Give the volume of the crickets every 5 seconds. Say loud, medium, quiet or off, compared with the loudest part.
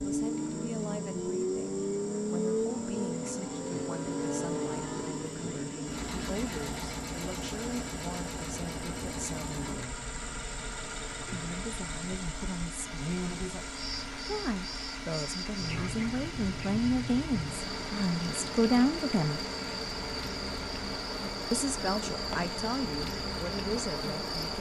quiet, quiet, loud, loud, loud.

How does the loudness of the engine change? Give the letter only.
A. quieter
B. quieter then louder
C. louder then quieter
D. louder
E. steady
A.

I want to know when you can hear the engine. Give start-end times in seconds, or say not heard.
0.0-24.5.